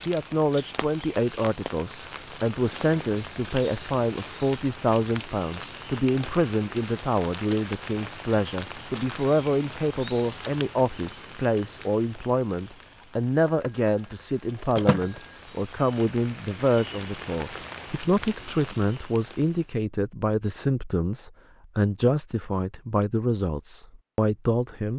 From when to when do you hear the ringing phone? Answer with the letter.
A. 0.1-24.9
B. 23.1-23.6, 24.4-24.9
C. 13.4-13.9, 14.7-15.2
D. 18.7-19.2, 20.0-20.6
C.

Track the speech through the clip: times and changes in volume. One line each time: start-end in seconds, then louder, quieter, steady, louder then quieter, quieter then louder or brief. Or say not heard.
0.1-24.9 steady.